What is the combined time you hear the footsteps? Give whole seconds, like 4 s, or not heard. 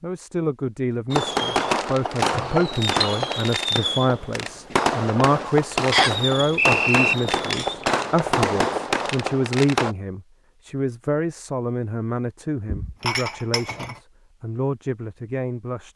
not heard.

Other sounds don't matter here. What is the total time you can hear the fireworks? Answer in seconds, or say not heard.
9 s.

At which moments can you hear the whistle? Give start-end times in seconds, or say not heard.
5.9-7.2.